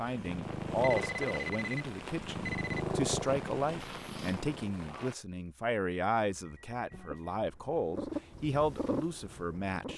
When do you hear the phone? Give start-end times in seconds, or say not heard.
0.8-2.9, 6.3-7.4.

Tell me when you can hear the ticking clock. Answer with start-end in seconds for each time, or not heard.
not heard.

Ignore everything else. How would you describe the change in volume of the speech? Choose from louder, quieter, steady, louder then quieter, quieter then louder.
steady.